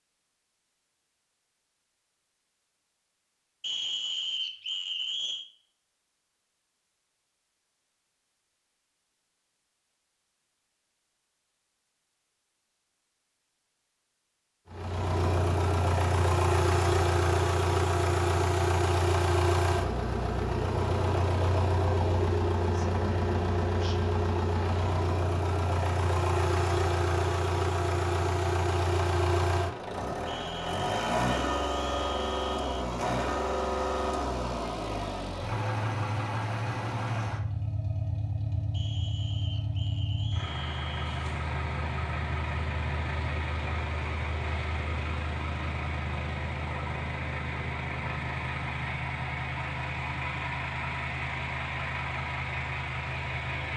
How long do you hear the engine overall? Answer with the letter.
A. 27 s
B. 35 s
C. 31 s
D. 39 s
D.